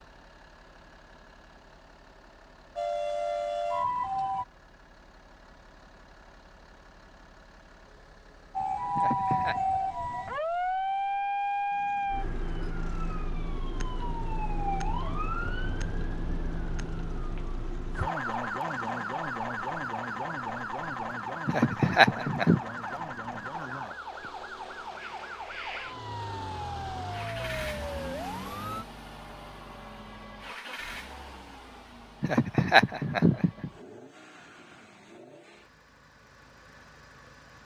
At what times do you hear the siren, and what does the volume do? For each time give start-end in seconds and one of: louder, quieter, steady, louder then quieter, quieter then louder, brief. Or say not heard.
2.8-4.5 brief
8.6-28.9 quieter.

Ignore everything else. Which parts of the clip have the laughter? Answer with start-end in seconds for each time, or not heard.
8.9-9.6, 21.4-22.6, 32.2-33.7.